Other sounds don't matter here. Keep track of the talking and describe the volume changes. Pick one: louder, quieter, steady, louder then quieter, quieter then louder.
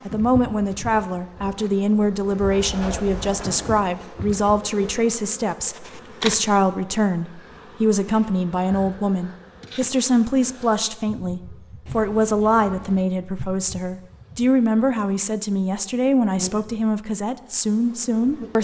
steady.